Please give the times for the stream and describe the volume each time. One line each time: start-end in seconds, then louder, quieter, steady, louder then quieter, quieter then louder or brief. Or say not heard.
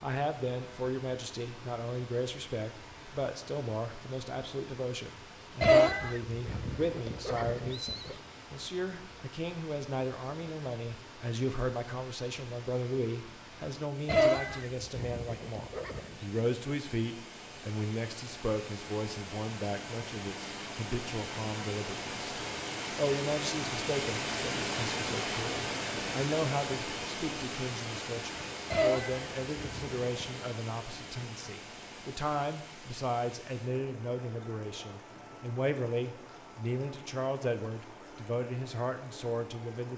0.0-39.9 louder then quieter.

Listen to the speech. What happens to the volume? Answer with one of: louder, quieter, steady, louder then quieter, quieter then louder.
steady.